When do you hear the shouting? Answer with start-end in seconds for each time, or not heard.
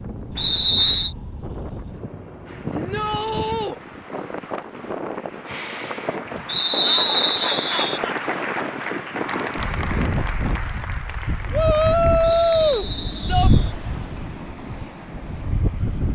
2.7-3.8, 6.8-8.3, 11.5-13.5.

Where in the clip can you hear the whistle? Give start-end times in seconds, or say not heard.
0.3-1.1, 6.5-8.0, 12.2-13.8.